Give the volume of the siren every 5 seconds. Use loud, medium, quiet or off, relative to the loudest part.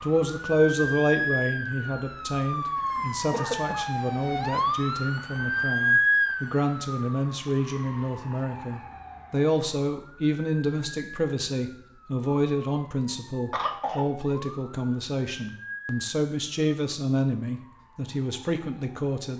loud, loud, quiet, quiet.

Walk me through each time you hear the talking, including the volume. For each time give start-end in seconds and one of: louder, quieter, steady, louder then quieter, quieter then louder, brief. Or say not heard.
0.0-19.3 steady.